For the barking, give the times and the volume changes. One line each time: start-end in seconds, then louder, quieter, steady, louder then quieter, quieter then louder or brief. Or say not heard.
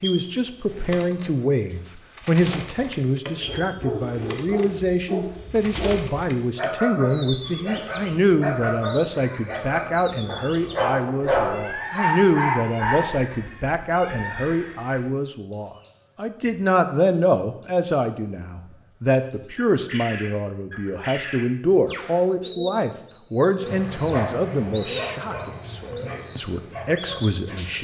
3.4-13.5 louder
23.6-27.7 quieter.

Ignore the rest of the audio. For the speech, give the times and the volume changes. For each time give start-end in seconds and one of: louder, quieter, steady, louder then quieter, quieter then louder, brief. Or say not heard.
0.0-27.7 steady.